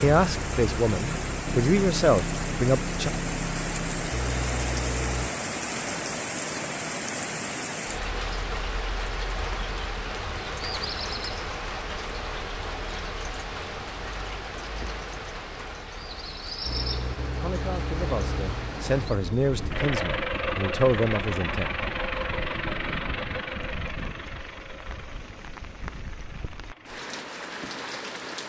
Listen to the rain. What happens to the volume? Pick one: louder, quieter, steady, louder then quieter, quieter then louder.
quieter.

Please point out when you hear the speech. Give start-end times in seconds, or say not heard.
0.0-3.1, 17.4-21.8.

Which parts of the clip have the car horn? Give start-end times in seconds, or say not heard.
not heard.